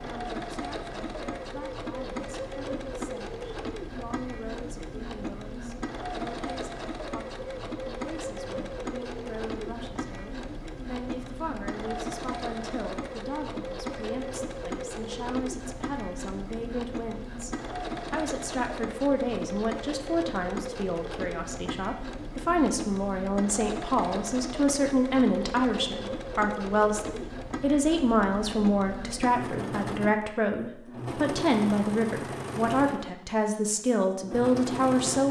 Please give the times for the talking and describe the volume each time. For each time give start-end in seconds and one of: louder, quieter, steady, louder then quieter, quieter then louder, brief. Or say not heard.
0.0-35.2 louder.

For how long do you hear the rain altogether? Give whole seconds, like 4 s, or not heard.
not heard.